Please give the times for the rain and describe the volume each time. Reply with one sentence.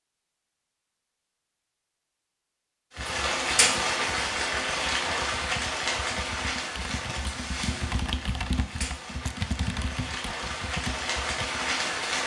You can hear the rain from 3.0 to 12.2 s, getting quieter then louder.